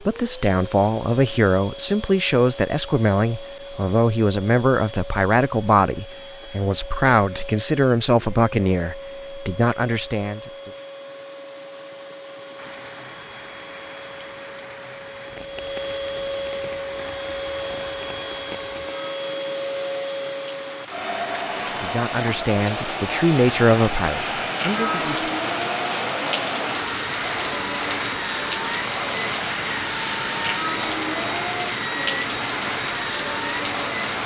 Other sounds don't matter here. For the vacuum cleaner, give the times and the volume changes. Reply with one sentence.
The vacuum cleaner can be heard from 0.0 to 34.2 s, getting louder.